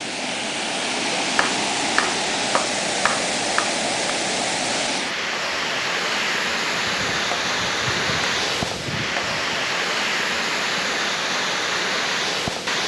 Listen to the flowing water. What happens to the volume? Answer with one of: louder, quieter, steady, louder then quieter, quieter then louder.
steady.